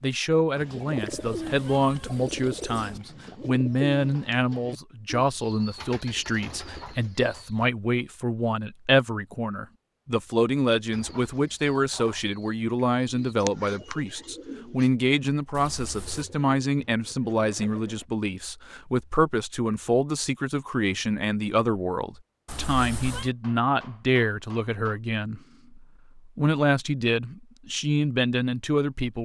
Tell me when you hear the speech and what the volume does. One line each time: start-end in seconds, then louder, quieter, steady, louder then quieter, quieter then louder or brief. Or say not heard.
0.0-29.2 steady.